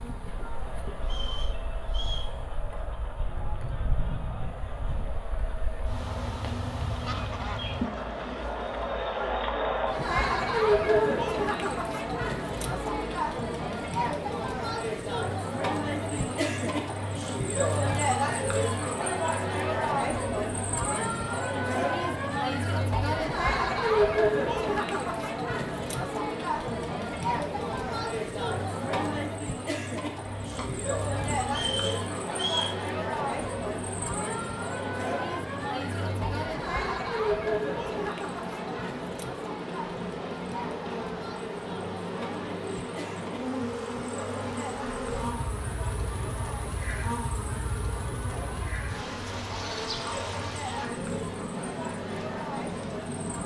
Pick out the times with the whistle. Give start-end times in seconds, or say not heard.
1.0-2.3, 31.4-32.8.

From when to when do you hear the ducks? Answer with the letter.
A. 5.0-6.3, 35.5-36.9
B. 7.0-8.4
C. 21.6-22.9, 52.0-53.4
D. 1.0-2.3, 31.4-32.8
B.